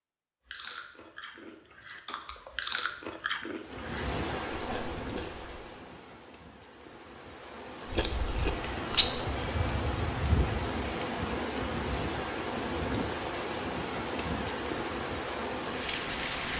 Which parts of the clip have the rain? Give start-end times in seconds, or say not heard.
3.5-16.5.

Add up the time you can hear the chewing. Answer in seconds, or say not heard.
7 s.